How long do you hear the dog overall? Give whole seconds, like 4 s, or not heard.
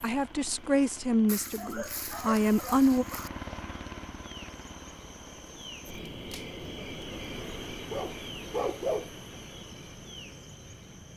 3 s.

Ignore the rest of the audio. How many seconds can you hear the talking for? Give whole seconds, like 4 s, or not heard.
3 s.